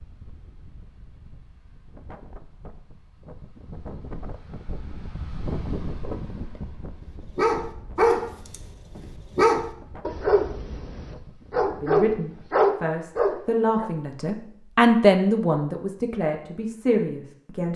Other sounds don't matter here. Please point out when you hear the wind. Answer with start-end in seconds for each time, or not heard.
0.0-12.6.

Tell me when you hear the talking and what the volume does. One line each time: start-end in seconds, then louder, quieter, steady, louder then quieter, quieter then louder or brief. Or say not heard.
11.8-17.7 louder then quieter.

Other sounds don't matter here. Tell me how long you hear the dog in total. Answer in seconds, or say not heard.
7 s.